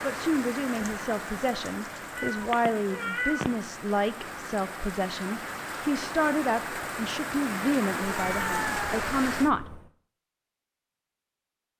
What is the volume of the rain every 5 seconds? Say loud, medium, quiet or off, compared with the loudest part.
medium, loud, off.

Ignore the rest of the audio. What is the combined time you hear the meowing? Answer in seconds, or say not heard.
3 s.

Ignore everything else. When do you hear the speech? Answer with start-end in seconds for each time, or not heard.
0.0-9.7.